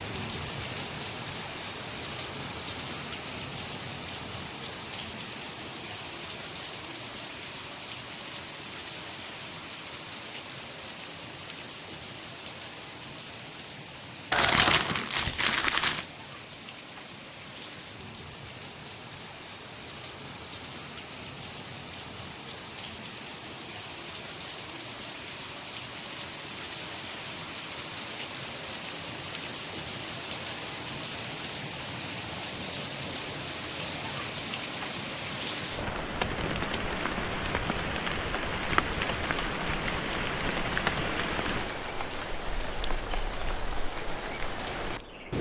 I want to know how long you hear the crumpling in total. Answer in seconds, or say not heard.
2 s.